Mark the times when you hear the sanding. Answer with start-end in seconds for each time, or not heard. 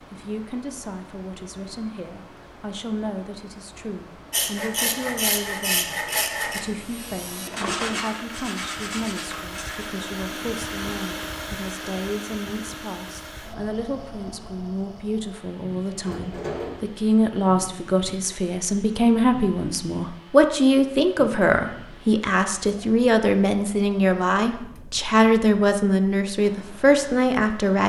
4.3-9.9.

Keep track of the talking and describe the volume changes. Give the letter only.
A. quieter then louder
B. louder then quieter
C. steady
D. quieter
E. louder
E.